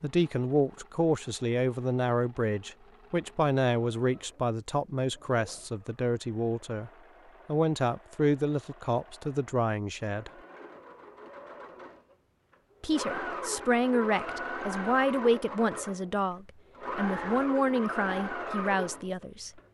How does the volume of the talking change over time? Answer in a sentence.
The loudness of the talking stays about the same.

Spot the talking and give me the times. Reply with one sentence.
The talking can be heard from 0.0 to 10.3 s and from 12.8 to 19.5 s.